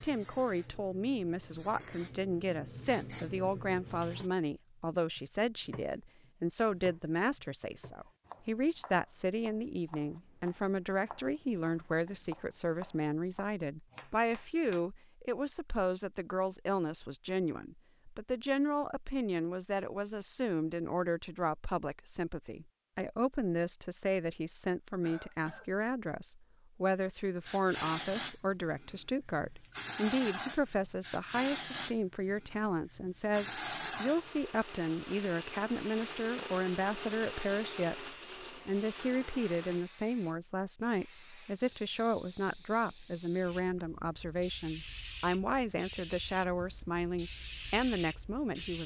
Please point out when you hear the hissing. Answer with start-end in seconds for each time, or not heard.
0.0-4.3, 27.4-48.8.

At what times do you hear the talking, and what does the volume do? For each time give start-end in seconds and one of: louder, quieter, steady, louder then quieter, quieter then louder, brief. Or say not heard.
0.0-48.8 steady.